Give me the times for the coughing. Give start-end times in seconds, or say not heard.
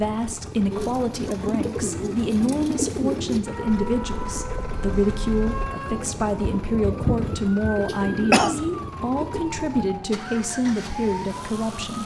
7.7-8.6.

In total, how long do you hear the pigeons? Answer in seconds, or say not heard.
9 s.